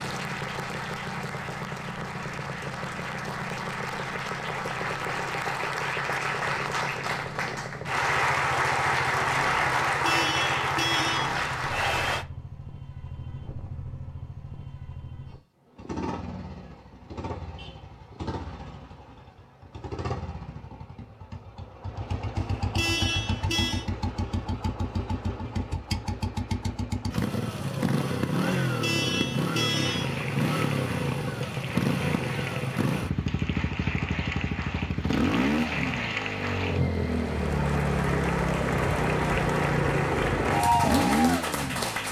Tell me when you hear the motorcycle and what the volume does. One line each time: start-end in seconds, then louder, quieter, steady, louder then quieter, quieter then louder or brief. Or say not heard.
0.0-42.0 louder.